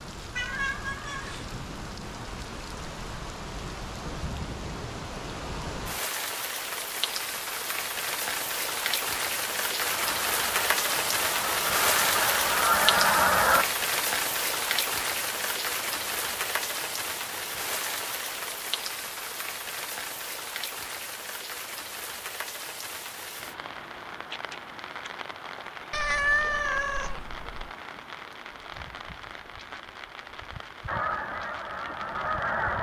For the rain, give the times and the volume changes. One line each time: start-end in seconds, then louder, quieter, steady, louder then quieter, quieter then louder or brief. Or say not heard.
0.0-32.7 louder then quieter.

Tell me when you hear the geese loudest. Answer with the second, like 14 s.
13 s.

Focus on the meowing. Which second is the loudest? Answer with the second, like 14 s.
26 s.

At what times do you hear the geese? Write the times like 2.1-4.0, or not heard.
9.8-13.7, 30.9-32.7.